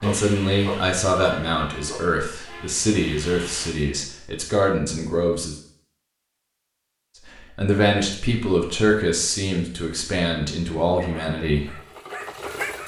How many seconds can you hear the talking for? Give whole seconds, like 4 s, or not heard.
10 s.